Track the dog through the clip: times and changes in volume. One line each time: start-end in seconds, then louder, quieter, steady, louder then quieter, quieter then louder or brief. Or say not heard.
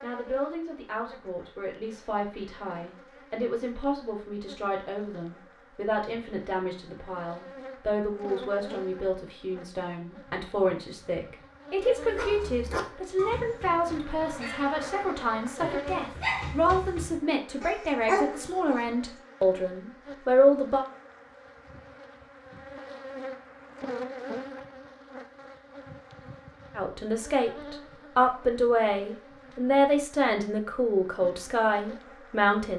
12.0-18.8 quieter then louder.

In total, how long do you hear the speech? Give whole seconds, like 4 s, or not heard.
27 s.